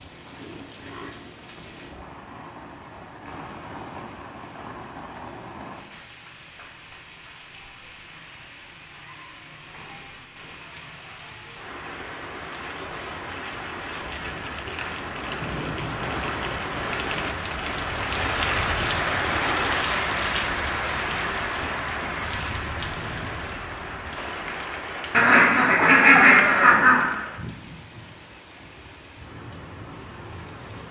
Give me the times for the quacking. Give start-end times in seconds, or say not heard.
25.1-27.1.